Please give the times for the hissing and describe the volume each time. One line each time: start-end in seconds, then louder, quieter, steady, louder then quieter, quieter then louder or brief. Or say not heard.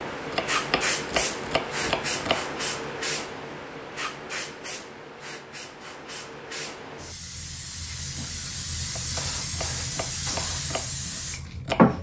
0.0-11.9 quieter then louder.